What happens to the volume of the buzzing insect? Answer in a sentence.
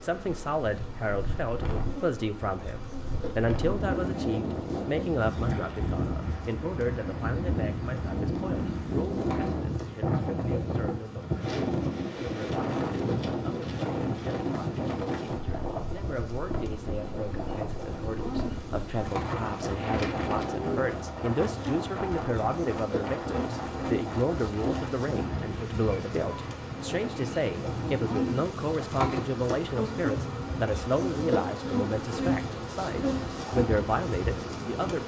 The loudness of the buzzing insect goes up.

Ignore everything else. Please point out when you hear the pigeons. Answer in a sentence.
The pigeons can be heard from 19.6 to 20.9 s.